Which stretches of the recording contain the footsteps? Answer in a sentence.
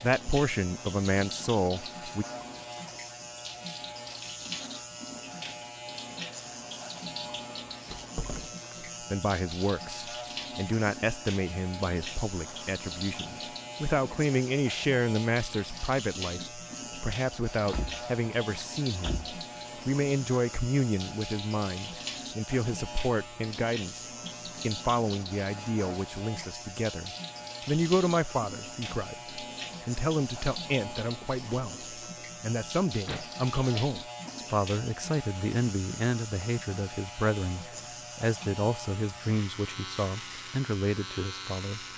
The footsteps can't be heard in this clip.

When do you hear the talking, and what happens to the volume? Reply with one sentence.
You can hear the talking briefly from 0.0 to 2.2 s; and from 9.0 to 41.9 s, at a steady volume.